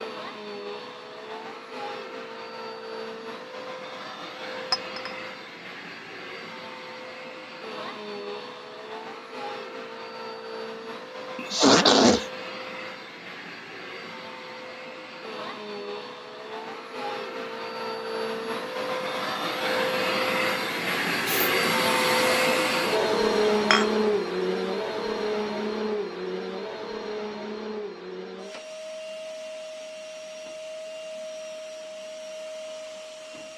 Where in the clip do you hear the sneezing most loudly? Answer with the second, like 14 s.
12 s.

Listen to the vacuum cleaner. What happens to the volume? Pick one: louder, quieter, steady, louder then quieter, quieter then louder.
louder then quieter.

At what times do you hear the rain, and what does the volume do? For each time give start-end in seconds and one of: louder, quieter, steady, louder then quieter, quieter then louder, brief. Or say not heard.
not heard.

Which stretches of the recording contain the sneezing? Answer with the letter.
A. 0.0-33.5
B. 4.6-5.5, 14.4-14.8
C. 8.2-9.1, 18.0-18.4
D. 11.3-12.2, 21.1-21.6
D.